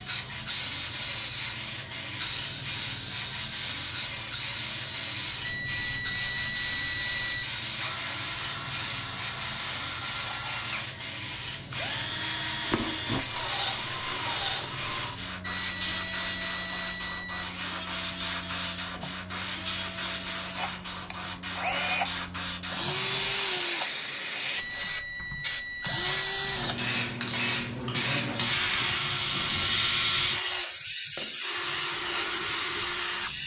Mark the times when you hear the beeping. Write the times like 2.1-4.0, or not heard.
5.4-7.5, 15.4-17.4, 24.6-26.6.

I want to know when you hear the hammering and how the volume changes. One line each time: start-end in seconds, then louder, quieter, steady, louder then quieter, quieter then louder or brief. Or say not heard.
not heard.